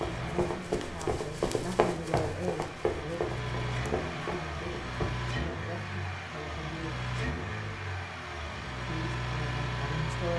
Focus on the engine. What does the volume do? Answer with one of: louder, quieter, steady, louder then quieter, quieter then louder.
louder.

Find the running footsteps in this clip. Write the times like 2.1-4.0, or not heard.
0.0-5.2.